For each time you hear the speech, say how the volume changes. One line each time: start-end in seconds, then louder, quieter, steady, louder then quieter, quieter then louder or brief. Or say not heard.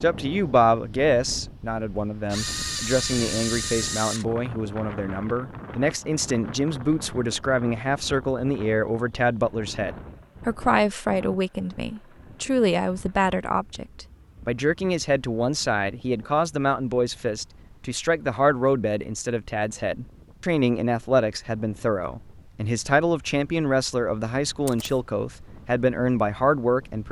0.0-27.0 steady.